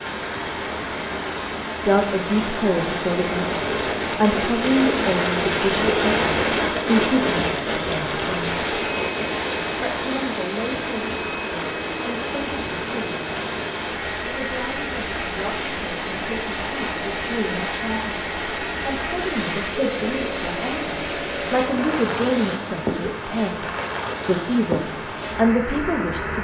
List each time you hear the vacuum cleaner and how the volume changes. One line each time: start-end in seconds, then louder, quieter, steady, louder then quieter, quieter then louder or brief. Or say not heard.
8.4-22.6 steady.